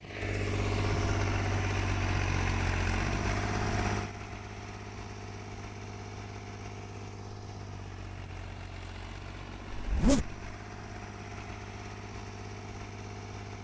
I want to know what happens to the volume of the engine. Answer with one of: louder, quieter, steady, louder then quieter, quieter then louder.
quieter.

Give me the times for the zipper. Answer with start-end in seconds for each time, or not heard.
9.7-10.4.